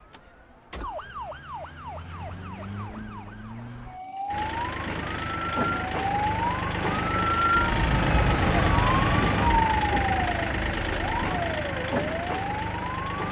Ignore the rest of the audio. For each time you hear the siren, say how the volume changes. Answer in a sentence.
You can hear the siren from 0.0 to 13.2 s, getting louder then quieter.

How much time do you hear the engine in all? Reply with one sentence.
You can hear the engine for 9 seconds altogether.